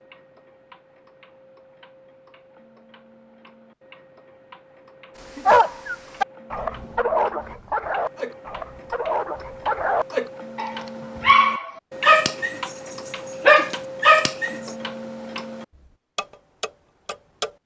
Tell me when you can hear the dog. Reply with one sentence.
The dog can be heard from 5.3 to 14.8 s.